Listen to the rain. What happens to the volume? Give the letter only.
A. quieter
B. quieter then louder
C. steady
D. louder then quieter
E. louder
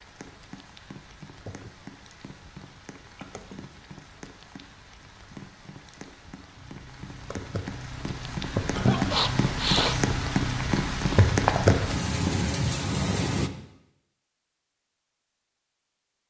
E.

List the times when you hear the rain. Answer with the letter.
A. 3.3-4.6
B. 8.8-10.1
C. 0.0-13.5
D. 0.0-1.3
C.